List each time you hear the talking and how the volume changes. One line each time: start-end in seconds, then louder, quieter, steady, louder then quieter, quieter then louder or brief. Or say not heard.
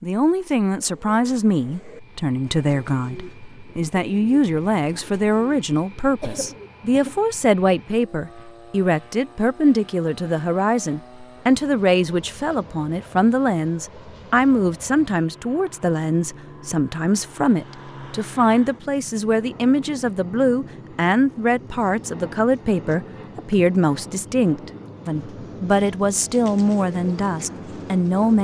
0.0-28.4 steady.